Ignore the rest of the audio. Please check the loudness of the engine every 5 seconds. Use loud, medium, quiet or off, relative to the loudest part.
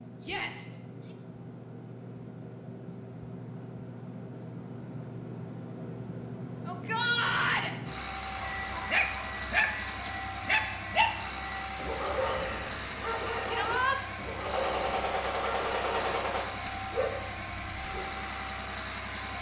medium, loud, loud, loud.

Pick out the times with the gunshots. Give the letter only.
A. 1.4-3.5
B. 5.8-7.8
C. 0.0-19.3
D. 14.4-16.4
D.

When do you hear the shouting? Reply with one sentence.
You can hear the shouting from 0.2 to 1.1 s, from 6.7 to 7.7 s and from 13.5 to 14.0 s.